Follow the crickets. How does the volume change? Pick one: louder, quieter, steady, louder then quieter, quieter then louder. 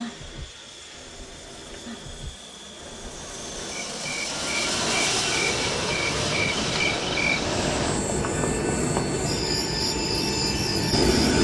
louder.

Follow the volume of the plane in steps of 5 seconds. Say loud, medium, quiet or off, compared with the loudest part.
medium, loud, loud.